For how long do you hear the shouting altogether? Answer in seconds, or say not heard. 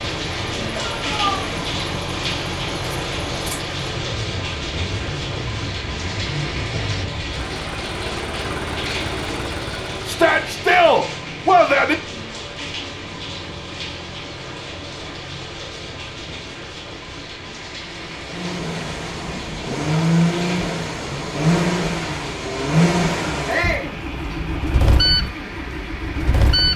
3 s.